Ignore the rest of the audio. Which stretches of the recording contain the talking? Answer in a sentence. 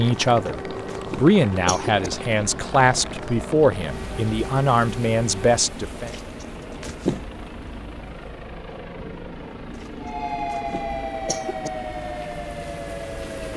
The talking can be heard from 0.0 to 6.1 s.